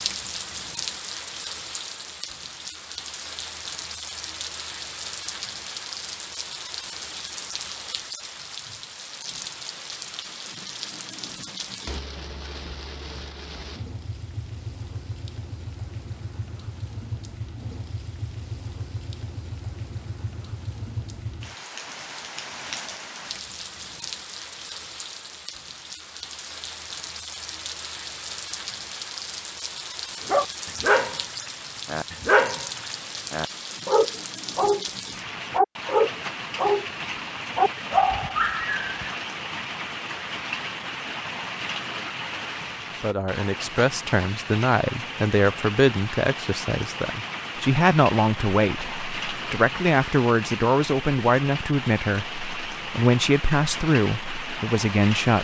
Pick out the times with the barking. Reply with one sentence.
The barking can be heard from 30.2 to 34.9 s, from 35.5 to 36.9 s and from 37.5 to 39.1 s.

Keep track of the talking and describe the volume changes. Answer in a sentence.
The loudness of the talking stays about the same.